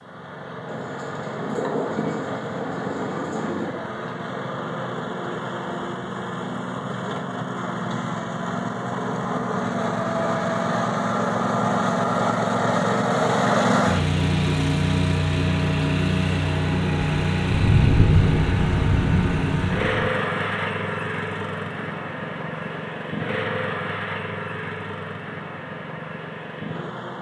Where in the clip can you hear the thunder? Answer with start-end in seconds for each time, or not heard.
0.7-3.8, 16.9-20.1.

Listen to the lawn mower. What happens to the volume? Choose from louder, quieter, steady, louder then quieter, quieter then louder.
louder then quieter.